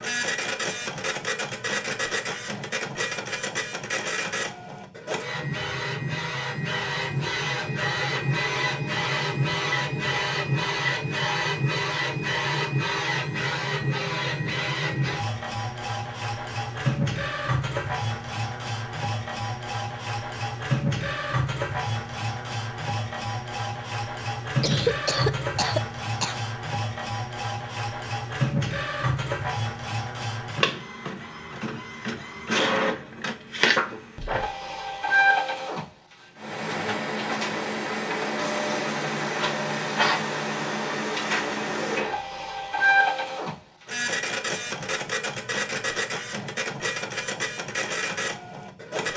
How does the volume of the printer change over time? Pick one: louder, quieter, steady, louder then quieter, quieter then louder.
steady.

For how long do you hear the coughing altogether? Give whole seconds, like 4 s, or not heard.
2 s.